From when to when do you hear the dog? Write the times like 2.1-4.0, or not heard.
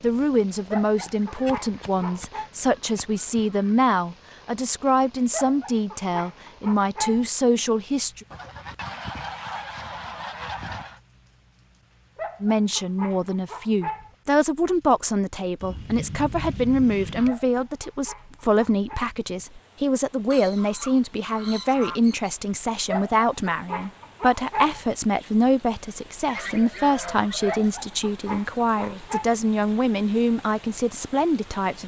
0.7-2.5, 5.3-7.3, 12.2-14.2, 17.2-19.0, 22.9-24.9, 27.4-29.3.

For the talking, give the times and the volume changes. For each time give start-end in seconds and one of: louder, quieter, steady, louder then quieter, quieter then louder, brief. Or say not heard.
0.0-8.2 steady
12.4-31.8 steady.